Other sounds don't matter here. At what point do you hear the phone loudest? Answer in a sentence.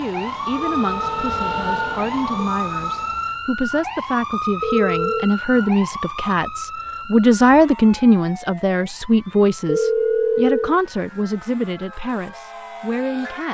The volume of the phone peaks at 10 seconds.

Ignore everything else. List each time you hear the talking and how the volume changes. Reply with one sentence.
The talking can be heard from 0.0 to 13.4 s, getting louder then quieter.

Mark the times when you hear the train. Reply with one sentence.
The train can be heard from 0.0 to 3.5 s.